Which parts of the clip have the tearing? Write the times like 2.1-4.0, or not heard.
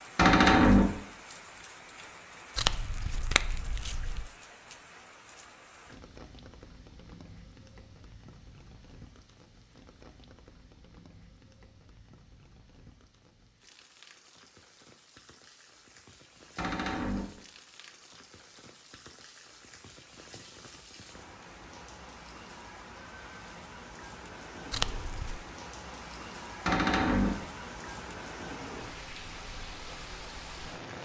2.5-4.3, 24.7-25.4.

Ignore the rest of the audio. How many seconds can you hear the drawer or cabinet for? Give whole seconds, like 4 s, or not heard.
2 s.